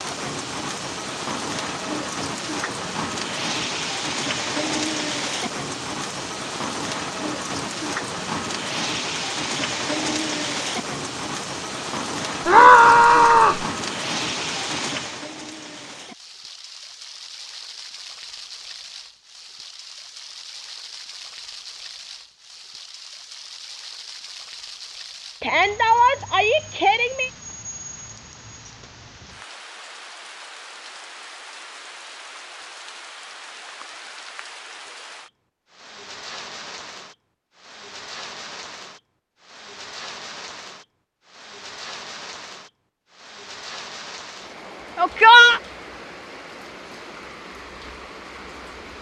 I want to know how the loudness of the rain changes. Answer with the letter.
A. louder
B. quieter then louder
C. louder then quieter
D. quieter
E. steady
D.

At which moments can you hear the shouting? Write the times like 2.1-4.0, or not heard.
12.4-13.7, 25.4-27.3, 45.0-45.6.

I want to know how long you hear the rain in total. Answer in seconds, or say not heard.
49 s.